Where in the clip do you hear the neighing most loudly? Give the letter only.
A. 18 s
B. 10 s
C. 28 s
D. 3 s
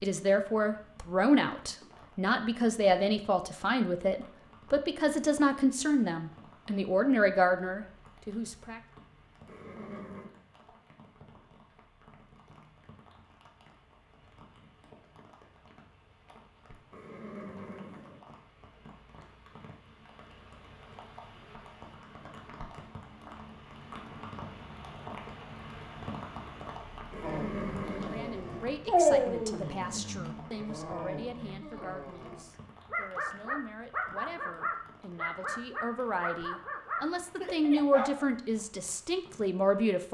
C.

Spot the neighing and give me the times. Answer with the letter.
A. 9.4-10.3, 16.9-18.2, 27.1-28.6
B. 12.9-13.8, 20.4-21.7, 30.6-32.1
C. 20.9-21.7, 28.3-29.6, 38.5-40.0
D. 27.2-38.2
A.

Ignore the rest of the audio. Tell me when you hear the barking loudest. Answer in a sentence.
The loudest moment of the barking is at 29 seconds.